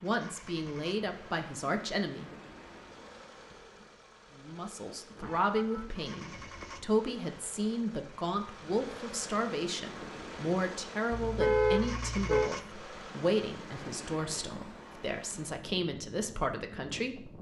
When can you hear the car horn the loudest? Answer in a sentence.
The loudest moment of the car horn is at 12 seconds.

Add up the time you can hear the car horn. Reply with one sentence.
You can hear the car horn for 3 seconds altogether.